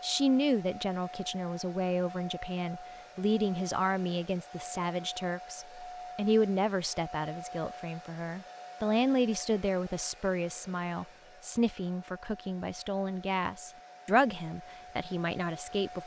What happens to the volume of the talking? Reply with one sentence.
The volume of the talking stays about the same.